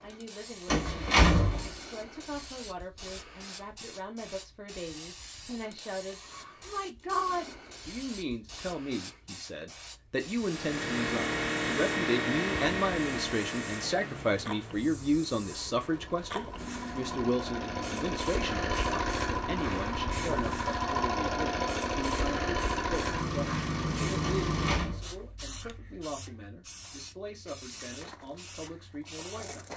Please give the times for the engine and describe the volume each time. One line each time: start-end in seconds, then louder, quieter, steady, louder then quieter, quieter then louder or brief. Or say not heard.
10.4-24.8 quieter then louder.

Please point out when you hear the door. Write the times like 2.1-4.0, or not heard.
0.7-1.8, 24.2-25.1.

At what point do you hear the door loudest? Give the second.
1 s.